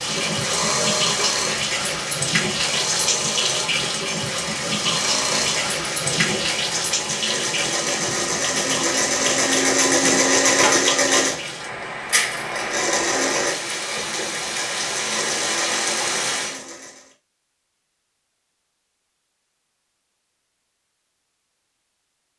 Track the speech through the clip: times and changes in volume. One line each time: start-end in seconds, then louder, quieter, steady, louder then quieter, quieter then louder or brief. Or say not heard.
not heard.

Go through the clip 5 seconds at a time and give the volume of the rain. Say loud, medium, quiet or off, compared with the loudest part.
loud, loud, medium, loud, off.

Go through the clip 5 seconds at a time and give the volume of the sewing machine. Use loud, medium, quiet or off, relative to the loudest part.
medium, loud, loud, medium, off.